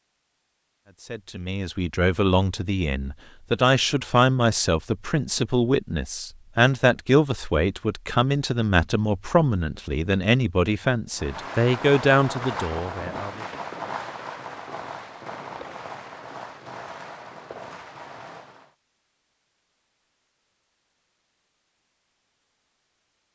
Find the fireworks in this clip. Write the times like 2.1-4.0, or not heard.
11.2-18.8.